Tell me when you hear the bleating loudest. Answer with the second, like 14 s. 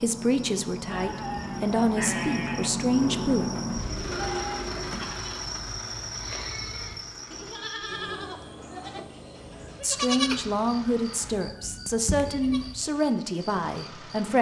10 s.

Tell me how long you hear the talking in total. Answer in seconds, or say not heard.
8 s.